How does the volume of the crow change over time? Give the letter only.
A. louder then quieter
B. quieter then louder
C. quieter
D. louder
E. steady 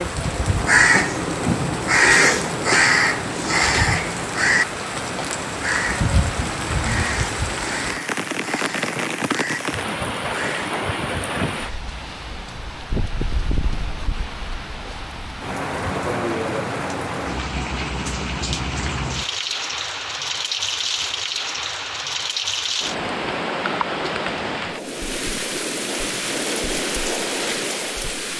C.